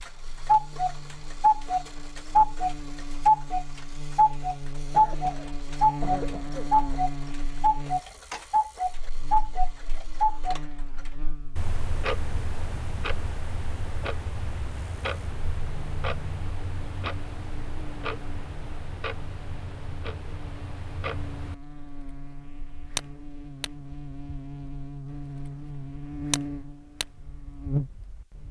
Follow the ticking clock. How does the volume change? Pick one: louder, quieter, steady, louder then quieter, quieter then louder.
quieter.